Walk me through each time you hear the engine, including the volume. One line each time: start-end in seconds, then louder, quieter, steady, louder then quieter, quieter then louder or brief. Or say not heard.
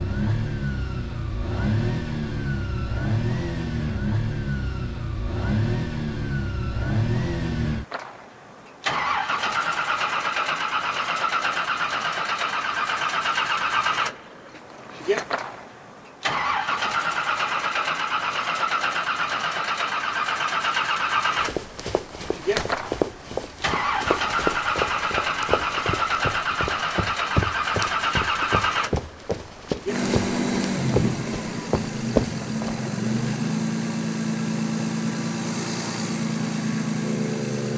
0.0-37.7 steady.